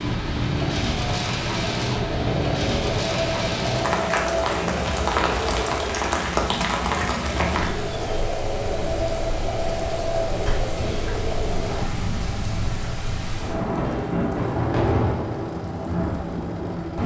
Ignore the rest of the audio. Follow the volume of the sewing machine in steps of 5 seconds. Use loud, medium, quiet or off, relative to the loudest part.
loud, loud, loud, quiet.